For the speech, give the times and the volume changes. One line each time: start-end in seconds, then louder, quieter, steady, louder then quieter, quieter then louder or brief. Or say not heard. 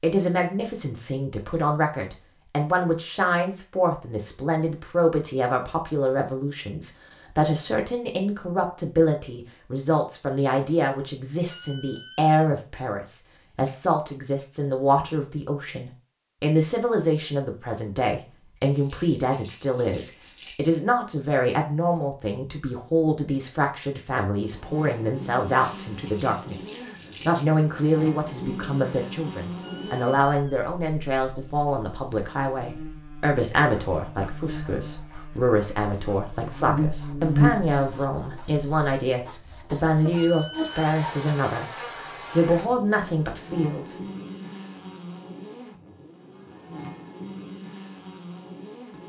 0.0-41.6 steady
42.3-44.0 brief.